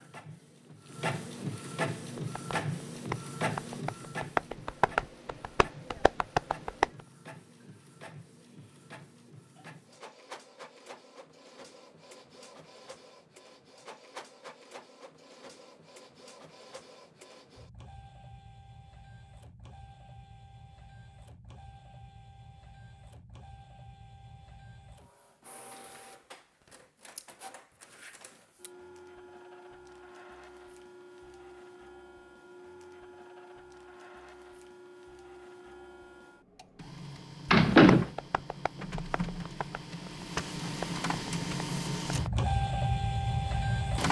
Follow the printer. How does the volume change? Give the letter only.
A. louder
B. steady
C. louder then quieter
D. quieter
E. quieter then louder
E.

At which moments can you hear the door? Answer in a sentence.
The door can be heard from 37.5 to 38.1 s.